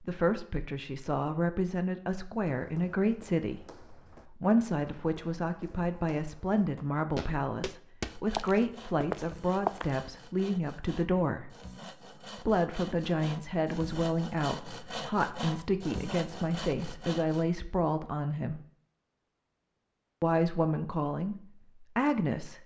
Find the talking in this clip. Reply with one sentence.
The talking can be heard from 0.0 to 11.6 s, from 12.3 to 18.6 s and from 20.2 to 22.6 s.